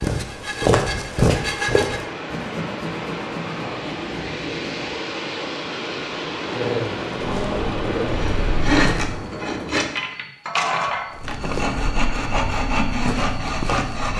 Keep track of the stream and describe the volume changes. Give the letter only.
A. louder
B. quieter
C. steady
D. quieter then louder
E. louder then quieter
A.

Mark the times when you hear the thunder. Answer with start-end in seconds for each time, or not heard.
6.7-9.9.